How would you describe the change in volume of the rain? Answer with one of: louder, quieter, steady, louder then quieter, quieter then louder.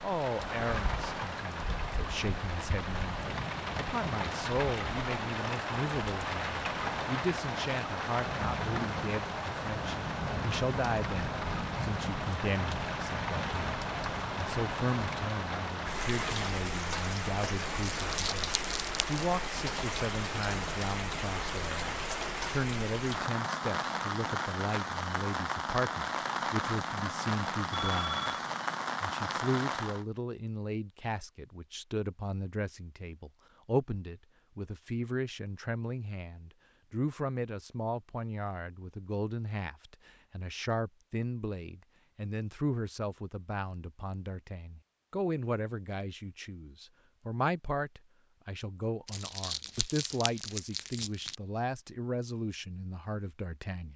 steady.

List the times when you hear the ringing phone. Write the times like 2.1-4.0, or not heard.
27.7-28.4.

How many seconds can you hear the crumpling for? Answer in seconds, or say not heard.
4 s.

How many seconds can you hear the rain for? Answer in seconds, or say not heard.
30 s.